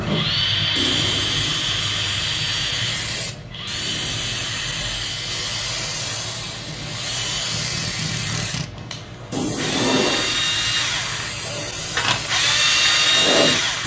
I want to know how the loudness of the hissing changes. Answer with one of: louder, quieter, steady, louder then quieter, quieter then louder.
steady.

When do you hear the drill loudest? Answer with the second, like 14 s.
13 s.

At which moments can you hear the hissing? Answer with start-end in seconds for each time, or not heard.
0.0-13.8.